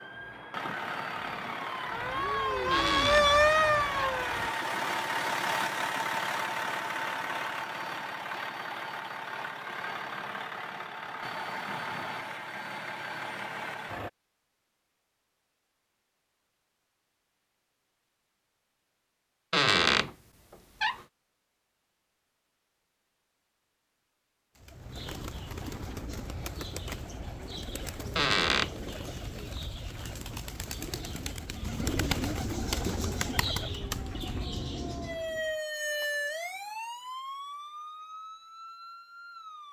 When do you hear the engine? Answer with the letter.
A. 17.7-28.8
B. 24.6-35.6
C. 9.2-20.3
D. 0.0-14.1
D.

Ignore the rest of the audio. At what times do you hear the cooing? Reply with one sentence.
You can hear the cooing from 24.6 to 35.6 s.